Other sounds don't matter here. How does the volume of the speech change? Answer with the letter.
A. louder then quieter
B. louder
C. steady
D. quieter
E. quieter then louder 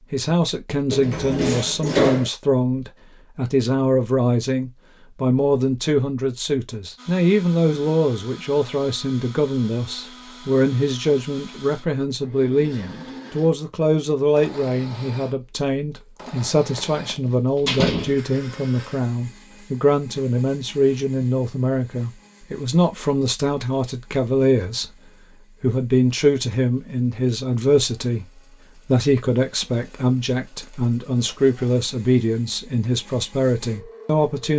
C.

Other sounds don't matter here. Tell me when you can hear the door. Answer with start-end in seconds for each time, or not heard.
0.9-2.3, 16.8-18.2, 30.6-31.4.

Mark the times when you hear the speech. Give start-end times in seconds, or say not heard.
0.1-24.9, 25.6-34.5.